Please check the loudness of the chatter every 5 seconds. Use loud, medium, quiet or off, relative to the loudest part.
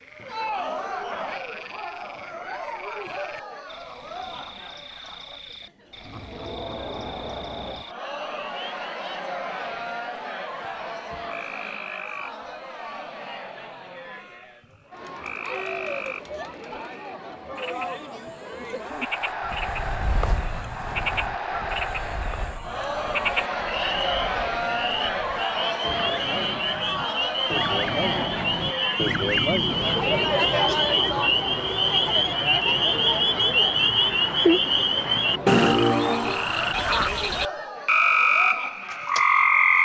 medium, medium, medium, medium, loud, loud, loud, medium.